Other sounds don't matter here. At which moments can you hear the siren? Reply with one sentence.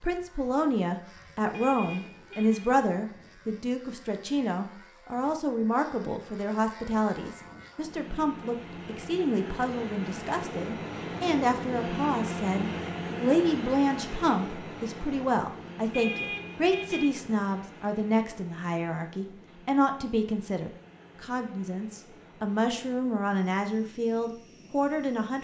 You can't hear the siren here.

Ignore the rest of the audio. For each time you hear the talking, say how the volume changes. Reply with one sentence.
You can hear the talking from 0.0 to 25.3 s, at a steady volume.